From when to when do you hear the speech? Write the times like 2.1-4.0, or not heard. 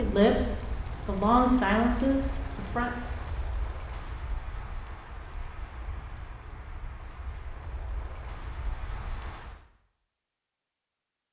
0.0-2.9.